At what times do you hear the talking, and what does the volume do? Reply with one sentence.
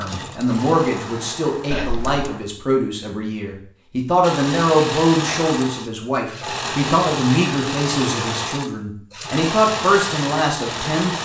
The talking can be heard from 0.0 to 11.1 s, at a steady volume.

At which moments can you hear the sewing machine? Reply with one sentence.
You can hear the sewing machine from 0.0 to 2.4 s and from 4.2 to 11.1 s.